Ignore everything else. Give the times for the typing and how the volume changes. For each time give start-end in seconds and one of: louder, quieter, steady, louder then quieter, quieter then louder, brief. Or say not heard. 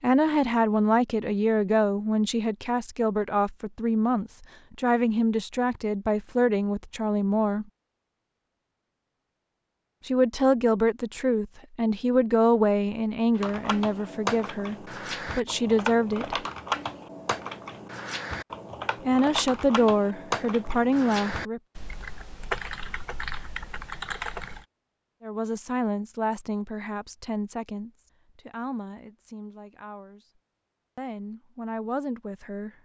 13.3-24.6 steady.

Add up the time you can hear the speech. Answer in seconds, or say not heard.
24 s.